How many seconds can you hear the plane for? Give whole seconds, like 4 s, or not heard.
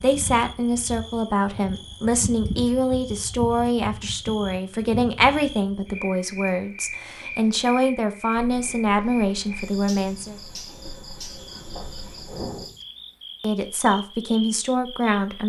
not heard.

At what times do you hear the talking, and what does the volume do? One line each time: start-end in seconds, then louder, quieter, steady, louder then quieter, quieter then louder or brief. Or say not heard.
0.0-10.3 steady
13.4-15.4 brief.